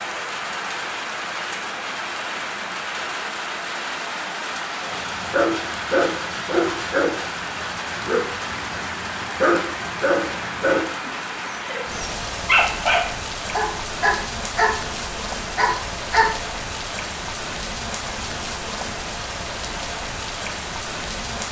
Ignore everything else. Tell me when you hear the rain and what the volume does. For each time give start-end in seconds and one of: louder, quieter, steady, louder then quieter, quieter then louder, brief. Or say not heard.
0.0-21.4 steady.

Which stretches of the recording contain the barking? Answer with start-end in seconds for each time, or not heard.
4.8-16.4.